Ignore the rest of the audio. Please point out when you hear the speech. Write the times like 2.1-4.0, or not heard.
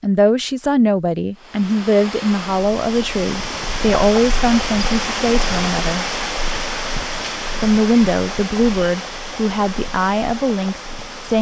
0.0-6.0, 7.6-11.3.